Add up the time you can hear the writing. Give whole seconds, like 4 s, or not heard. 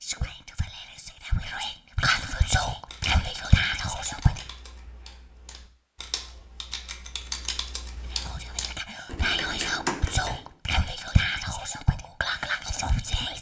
not heard.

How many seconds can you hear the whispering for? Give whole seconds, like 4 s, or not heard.
10 s.